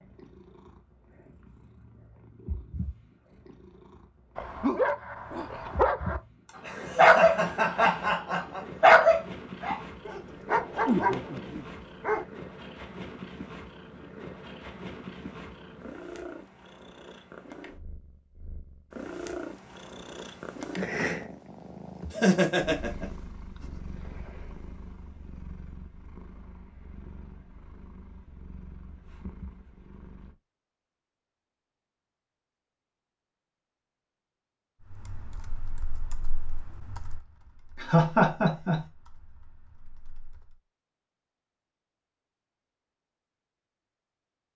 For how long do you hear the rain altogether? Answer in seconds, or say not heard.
not heard.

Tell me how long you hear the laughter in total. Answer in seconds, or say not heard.
4 s.